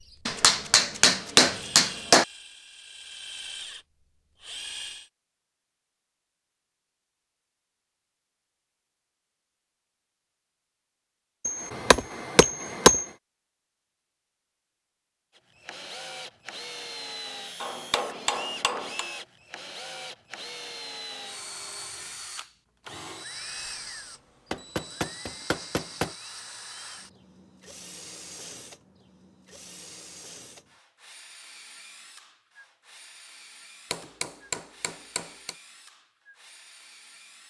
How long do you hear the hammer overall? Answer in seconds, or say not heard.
8 s.